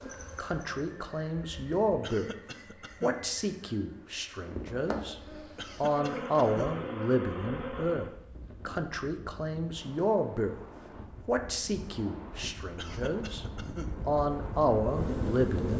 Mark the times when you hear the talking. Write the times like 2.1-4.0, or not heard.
0.0-2.3, 3.0-10.6, 11.2-13.4, 14.1-15.7.